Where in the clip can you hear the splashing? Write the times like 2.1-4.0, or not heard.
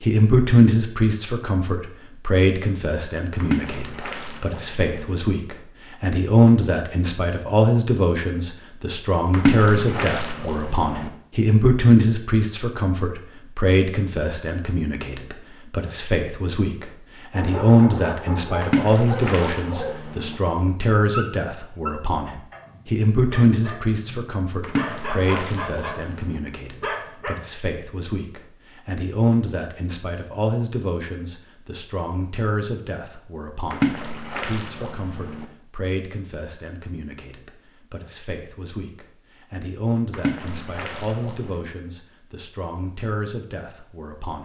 3.4-5.2, 9.3-11.1, 18.6-20.4, 24.6-26.4, 33.7-35.5, 40.1-41.7.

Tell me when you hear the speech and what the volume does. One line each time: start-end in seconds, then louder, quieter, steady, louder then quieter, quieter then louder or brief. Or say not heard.
0.0-44.4 quieter.